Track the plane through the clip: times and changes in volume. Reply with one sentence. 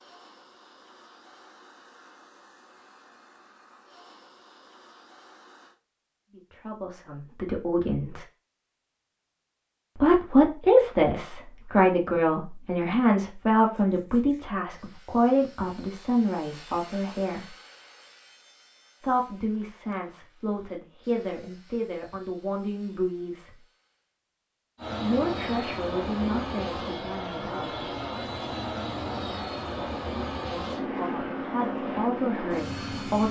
The plane can be heard from 0.0 to 5.8 s, at a steady volume; and from 24.8 to 33.2 s, at a steady volume.